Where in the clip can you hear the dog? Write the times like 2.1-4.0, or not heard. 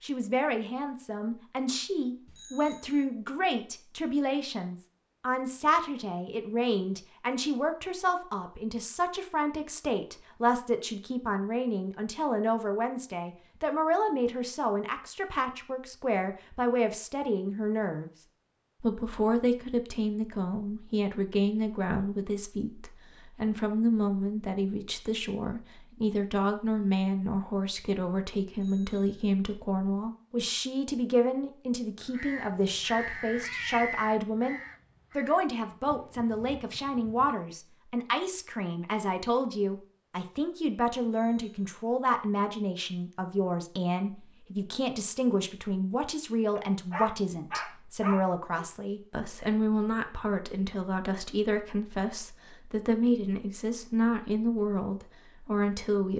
46.5-48.6.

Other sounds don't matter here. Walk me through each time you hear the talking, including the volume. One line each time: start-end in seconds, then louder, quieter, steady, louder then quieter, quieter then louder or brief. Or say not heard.
0.0-18.1 steady
18.8-56.1 steady.